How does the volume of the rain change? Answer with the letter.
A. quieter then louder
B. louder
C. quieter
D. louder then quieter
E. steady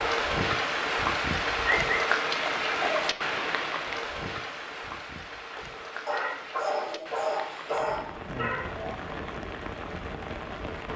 C.